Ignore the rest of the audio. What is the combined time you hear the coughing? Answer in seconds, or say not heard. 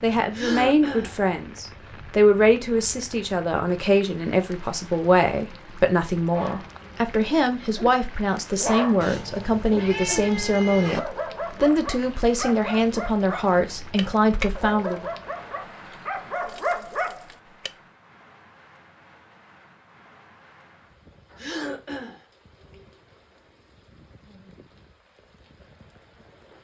2 s.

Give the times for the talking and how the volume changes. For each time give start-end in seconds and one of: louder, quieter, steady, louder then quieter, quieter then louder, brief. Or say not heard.
0.0-15.1 steady.